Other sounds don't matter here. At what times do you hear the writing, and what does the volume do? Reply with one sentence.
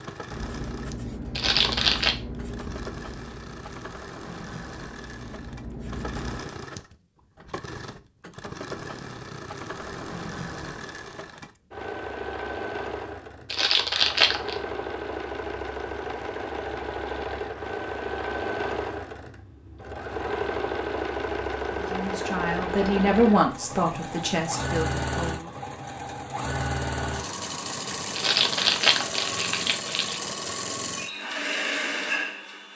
You can hear the writing from 0.2 to 6.5 s, getting quieter then louder.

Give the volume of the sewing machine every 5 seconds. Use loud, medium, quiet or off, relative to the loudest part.
medium, medium, medium, loud, loud, loud, loud.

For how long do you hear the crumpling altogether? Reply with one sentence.
You can hear the crumpling for 4 seconds altogether.